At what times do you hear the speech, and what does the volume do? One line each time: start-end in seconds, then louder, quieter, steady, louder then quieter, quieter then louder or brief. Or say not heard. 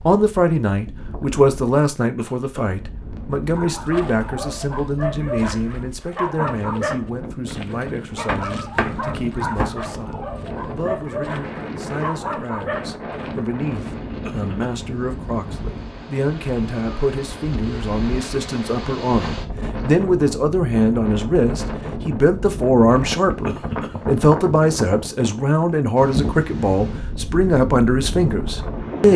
0.1-29.1 quieter then louder.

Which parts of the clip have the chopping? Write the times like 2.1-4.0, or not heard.
8.2-9.8.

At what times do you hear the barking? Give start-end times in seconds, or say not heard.
3.5-13.2.